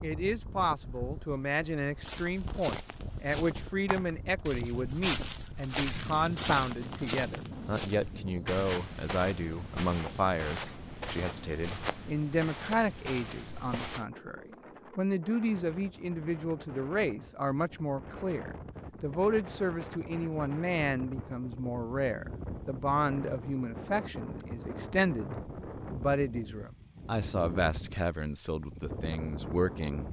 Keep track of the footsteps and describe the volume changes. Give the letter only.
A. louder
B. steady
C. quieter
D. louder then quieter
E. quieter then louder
D.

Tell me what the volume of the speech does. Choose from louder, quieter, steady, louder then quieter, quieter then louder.
steady.